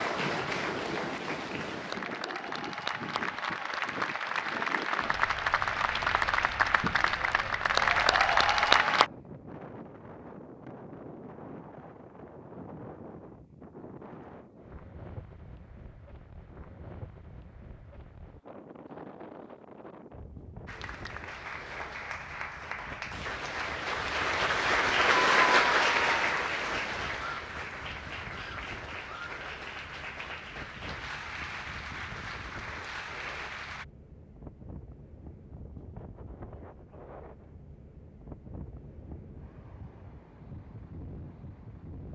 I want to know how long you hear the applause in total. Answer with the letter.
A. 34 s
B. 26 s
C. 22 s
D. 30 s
C.